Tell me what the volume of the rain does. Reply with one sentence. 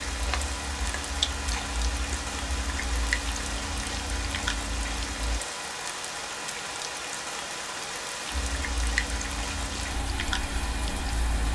The volume of the rain stays about the same.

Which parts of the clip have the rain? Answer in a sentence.
The rain can be heard from 0.0 to 11.5 s.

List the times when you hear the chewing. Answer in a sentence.
You can hear the chewing from 0.0 to 5.4 s and from 8.3 to 11.5 s.